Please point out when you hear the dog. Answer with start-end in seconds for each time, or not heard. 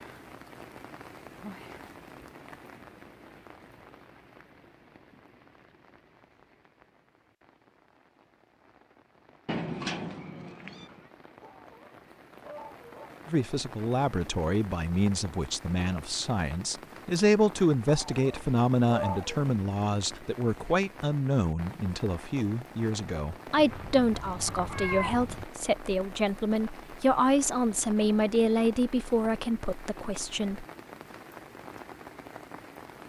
11.4-13.2, 17.9-19.4.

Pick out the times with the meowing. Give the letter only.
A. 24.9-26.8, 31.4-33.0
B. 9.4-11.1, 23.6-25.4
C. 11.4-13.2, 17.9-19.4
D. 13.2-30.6
B.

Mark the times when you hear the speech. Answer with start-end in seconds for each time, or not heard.
13.2-30.6.